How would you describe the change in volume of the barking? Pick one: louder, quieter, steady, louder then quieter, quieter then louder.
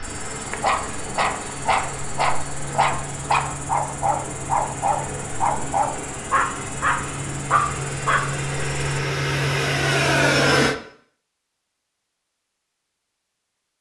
steady.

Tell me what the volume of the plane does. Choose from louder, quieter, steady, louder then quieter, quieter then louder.
louder.